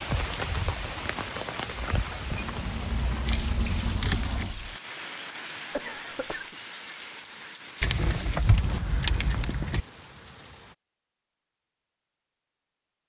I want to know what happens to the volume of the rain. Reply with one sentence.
The loudness of the rain goes down.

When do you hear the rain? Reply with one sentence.
The rain can be heard from 0.0 to 10.8 s.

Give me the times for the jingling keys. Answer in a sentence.
You can hear the jingling keys from 2.3 to 4.5 s and from 7.8 to 9.8 s.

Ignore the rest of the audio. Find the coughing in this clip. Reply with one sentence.
The coughing can be heard from 5.7 to 6.5 s.